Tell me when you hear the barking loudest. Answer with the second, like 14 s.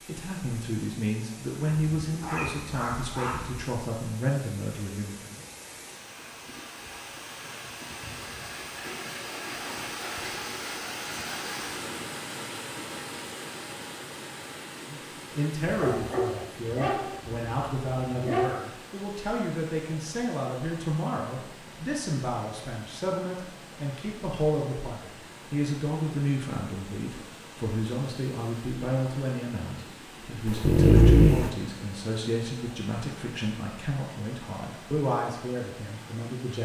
31 s.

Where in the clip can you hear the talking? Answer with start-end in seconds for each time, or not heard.
0.1-5.5, 14.8-36.5.